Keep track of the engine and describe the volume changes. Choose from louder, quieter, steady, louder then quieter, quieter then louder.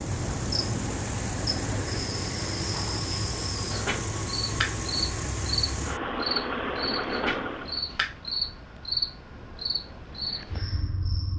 steady.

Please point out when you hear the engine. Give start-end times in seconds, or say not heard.
0.0-7.9.